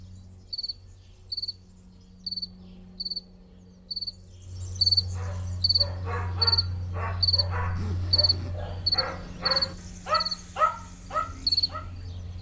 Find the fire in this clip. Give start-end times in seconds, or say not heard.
not heard.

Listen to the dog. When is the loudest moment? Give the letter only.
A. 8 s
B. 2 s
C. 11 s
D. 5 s
C.